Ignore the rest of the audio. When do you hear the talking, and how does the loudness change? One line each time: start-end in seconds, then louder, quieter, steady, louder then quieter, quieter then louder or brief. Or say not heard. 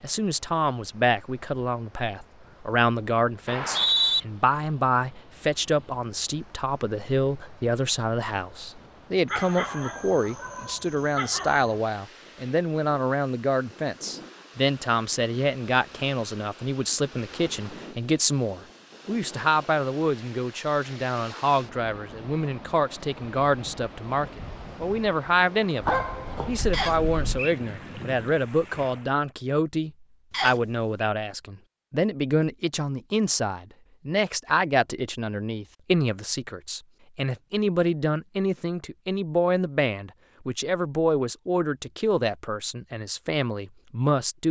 0.0-44.4 steady.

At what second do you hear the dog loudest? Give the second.
26 s.